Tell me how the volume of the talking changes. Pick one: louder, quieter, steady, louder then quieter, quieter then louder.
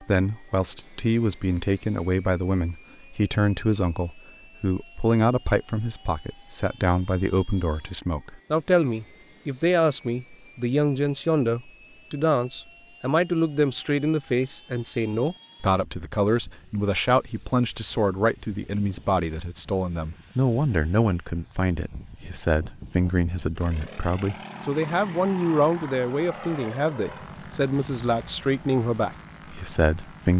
steady.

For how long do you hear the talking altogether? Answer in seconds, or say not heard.
30 s.